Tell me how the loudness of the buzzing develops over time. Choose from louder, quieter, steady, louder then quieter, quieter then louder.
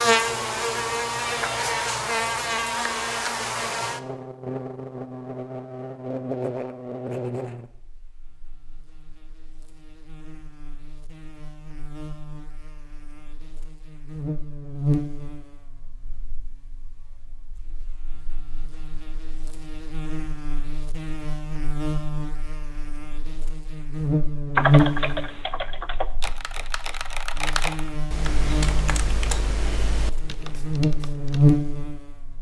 quieter then louder.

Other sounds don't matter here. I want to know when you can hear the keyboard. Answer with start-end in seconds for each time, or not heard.
24.6-31.4.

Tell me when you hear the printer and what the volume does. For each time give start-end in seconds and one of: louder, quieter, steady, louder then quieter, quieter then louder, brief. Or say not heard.
not heard.